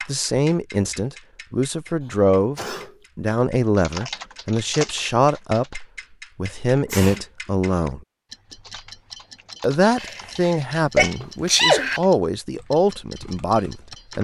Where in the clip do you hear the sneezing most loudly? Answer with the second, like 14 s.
12 s.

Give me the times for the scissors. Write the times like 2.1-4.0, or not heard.
not heard.